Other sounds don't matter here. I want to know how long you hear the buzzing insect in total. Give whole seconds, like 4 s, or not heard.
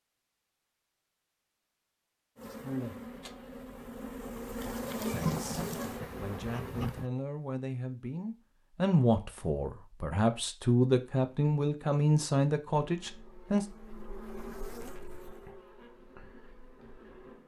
9 s.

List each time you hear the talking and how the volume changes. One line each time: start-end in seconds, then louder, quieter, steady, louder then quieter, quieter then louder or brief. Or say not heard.
5.1-13.7 louder.